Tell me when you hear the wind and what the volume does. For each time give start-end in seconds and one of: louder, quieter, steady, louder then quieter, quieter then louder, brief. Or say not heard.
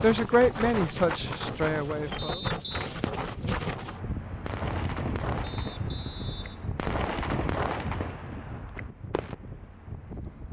0.0-10.4 quieter.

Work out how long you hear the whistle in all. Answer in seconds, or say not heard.
2 s.